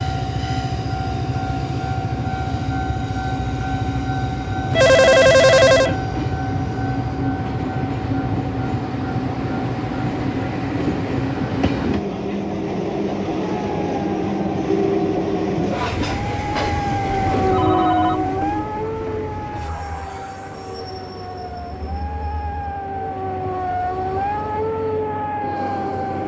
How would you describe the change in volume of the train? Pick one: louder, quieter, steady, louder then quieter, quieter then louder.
quieter.